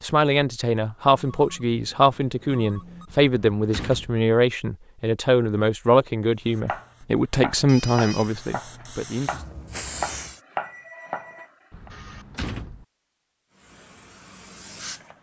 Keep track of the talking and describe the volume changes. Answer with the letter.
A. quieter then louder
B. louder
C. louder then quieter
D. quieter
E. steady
E.